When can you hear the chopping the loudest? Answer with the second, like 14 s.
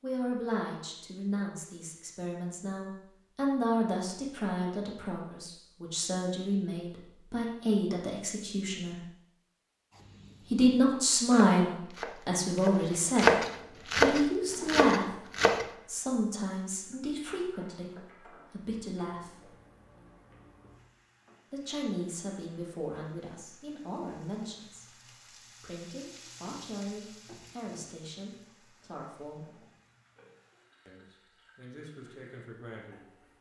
13 s.